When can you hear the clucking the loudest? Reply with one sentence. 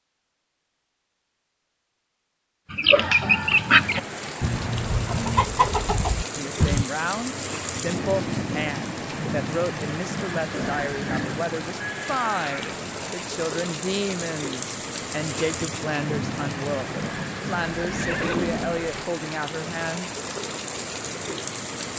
The volume of the clucking peaks at 4 seconds.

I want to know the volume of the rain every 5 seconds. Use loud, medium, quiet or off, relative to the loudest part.
medium, loud, loud, loud, loud.